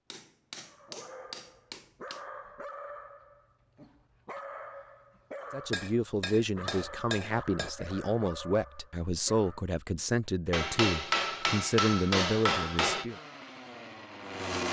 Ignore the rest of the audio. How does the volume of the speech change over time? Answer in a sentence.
The loudness of the speech stays about the same.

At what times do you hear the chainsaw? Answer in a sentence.
You can hear the chainsaw from 13.0 to 14.6 s.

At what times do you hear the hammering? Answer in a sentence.
You can hear the hammering from 0.1 to 2.2 s, from 5.7 to 7.7 s and from 10.5 to 13.1 s.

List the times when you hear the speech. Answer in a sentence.
The speech can be heard from 5.5 to 13.2 s.